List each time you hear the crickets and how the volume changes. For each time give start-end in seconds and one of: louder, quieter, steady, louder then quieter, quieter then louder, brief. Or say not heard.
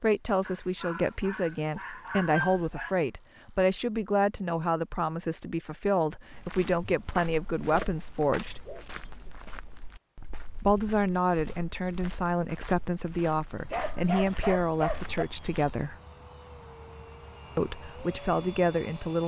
0.0-19.2 quieter.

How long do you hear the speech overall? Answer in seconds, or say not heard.
16 s.